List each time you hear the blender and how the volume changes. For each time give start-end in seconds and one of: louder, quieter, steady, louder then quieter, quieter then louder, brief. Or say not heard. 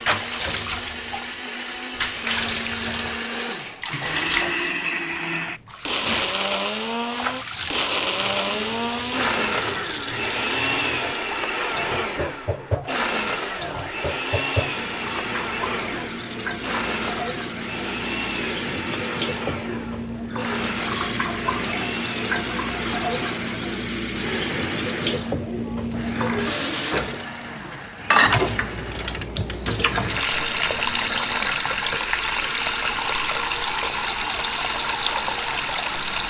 0.0-36.2 quieter.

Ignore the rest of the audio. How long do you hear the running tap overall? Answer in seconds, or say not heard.
36 s.